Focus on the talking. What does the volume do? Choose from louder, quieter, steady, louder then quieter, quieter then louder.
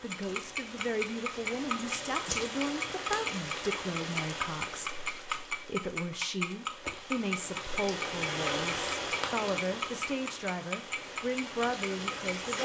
steady.